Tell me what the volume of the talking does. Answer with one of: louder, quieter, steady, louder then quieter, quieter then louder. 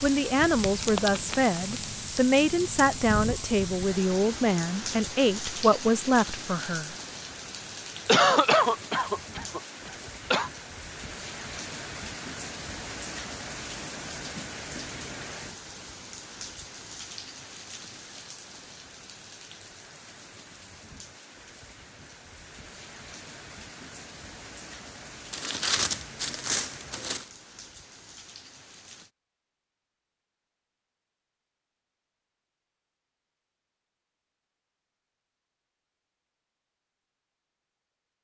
steady.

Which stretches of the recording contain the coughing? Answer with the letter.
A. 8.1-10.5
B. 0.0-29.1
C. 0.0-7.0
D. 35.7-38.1
A.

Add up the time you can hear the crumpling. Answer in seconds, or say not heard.
3 s.